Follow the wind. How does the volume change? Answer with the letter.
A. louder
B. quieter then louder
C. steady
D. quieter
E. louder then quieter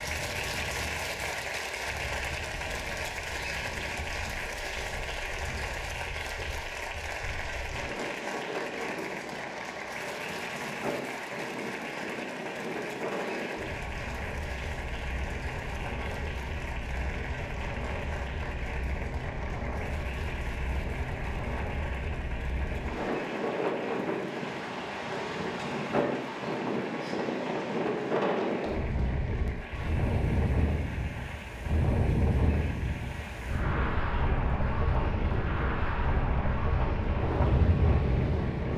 A.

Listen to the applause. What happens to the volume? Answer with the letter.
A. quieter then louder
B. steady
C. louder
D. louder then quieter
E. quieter
E.